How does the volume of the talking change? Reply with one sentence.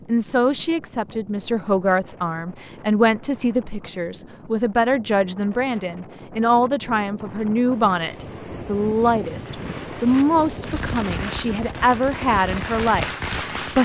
The volume of the talking stays about the same.